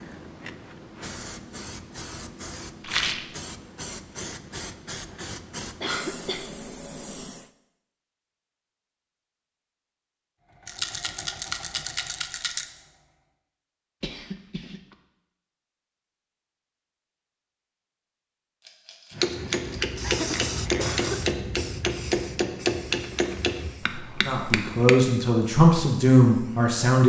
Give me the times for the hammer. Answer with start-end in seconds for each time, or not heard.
19.1-24.9.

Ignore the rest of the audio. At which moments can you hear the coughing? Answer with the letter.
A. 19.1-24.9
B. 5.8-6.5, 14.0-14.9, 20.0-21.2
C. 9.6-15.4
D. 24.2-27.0
B.